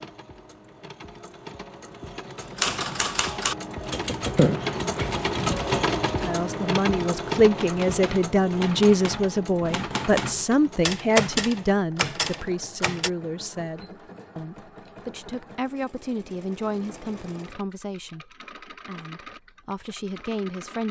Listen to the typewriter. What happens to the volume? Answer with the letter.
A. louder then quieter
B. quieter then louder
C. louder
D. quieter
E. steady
B.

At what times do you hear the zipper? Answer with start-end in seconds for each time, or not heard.
4.3-5.2.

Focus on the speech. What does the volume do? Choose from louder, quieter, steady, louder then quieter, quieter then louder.
quieter.